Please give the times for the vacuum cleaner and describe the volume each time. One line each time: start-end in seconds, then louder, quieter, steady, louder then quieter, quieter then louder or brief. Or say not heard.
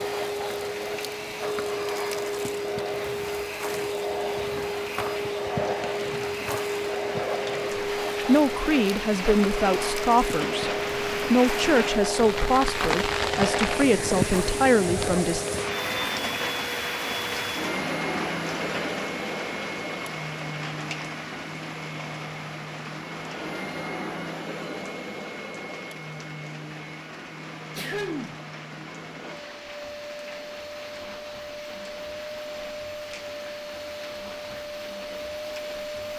0.0-36.1 quieter.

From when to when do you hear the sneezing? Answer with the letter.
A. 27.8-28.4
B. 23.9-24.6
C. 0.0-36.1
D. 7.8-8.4
A.